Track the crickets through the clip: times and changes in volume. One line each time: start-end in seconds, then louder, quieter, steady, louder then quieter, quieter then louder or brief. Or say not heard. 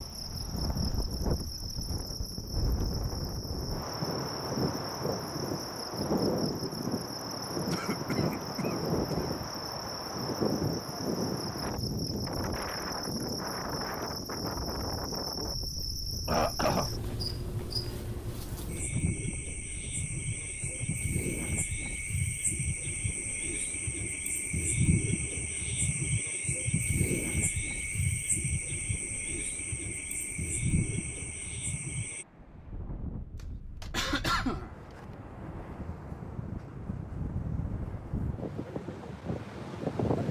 0.0-32.2 louder.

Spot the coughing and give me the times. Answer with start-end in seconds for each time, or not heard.
7.7-9.2, 16.1-17.1, 33.8-35.0.